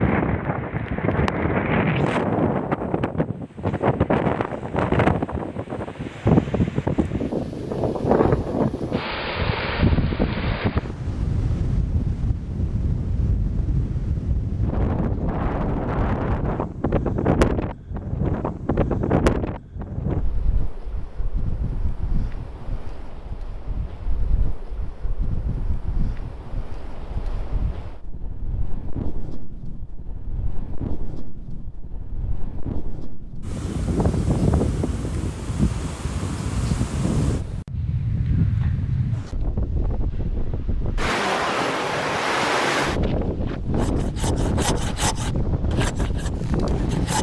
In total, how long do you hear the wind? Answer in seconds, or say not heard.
47 s.